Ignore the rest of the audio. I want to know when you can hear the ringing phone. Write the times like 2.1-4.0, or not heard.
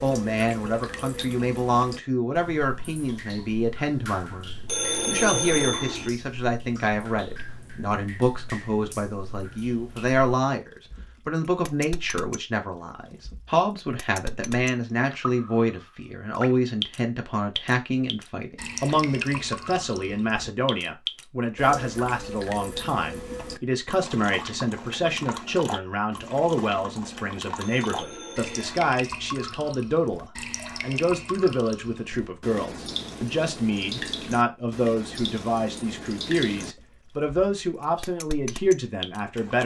4.7-6.1, 27.6-28.8.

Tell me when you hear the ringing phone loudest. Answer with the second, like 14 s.
5 s.